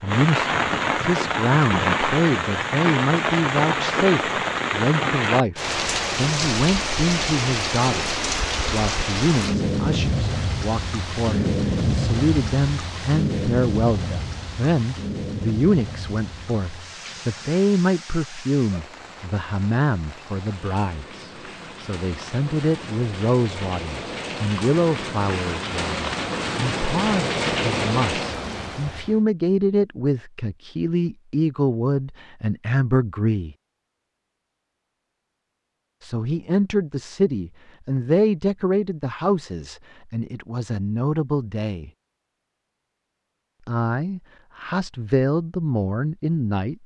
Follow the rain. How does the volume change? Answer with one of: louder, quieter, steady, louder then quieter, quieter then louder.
quieter then louder.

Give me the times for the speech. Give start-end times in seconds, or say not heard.
0.0-33.5, 36.0-41.9, 43.6-46.8.